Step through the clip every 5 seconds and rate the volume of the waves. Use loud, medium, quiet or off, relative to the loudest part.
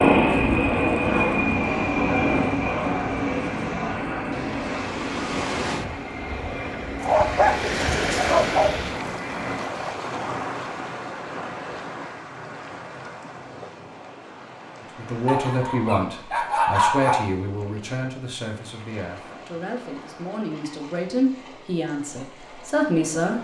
medium, loud, medium, quiet, quiet.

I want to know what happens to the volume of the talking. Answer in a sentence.
The loudness of the talking goes down, then up.